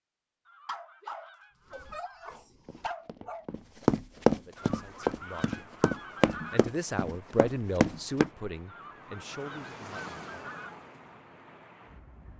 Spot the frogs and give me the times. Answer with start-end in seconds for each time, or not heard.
not heard.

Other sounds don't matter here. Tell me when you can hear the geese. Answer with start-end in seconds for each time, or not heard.
0.5-2.4, 4.5-6.7, 8.7-10.8.